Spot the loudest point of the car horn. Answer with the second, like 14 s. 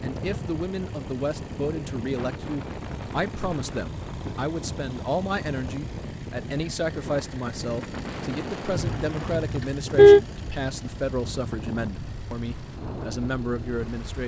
10 s.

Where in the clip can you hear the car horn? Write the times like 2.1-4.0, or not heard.
8.8-10.2.